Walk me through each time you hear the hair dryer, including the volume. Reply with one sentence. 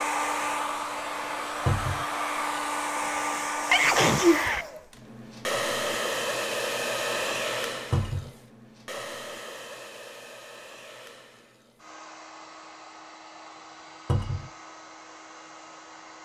The hair dryer can be heard from 0.0 to 16.1 s, getting quieter.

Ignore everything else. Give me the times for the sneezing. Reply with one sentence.
You can hear the sneezing from 3.0 to 4.7 s.